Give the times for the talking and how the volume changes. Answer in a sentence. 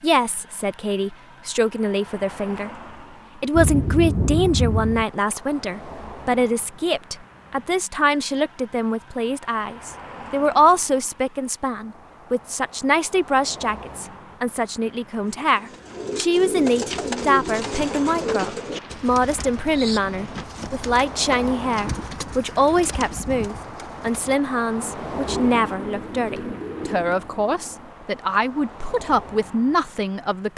The talking can be heard briefly from 0.0 to 2.7 s; and from 3.4 to 30.5 s, at a steady volume.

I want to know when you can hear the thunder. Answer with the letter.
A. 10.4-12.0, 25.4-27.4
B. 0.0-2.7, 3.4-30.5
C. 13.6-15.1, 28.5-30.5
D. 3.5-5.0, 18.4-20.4
D.